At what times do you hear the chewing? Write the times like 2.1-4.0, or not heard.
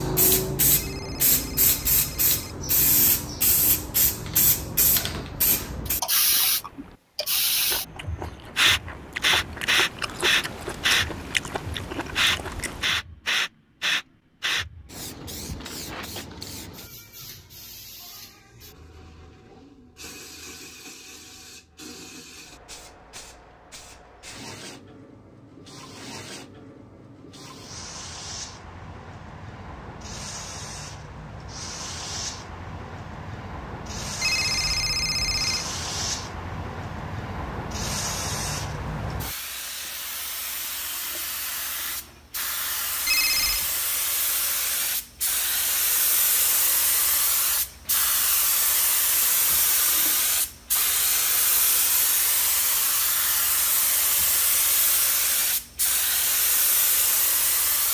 5.8-12.9.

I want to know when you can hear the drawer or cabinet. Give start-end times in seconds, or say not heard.
not heard.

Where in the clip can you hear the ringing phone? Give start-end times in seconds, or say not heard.
0.7-2.5, 34.2-35.6, 43.0-43.6.